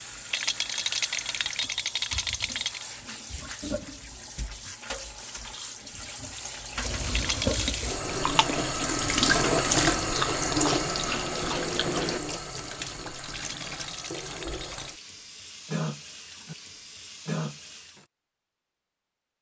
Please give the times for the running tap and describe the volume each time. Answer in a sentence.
You can hear the running tap from 0.0 to 18.1 s, getting louder then quieter.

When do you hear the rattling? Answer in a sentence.
The rattling can be heard from 0.3 to 2.9 s, from 7.1 to 7.8 s and from 13.3 to 14.9 s.